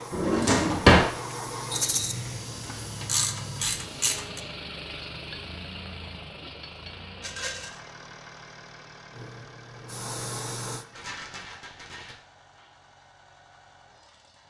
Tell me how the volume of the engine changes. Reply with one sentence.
The loudness of the engine goes down.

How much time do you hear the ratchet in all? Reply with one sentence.
The ratchet can be heard for 2 seconds in total.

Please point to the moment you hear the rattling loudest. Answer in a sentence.
The loudest moment of the rattling is at 2 seconds.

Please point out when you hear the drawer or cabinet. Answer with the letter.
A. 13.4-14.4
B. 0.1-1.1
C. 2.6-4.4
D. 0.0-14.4
B.